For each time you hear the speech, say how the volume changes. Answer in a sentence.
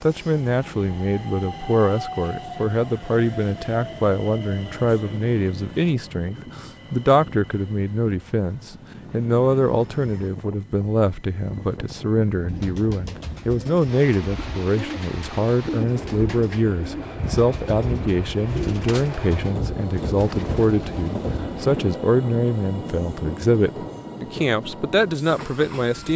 You can hear the speech from 0.0 to 26.1 s, at a steady volume.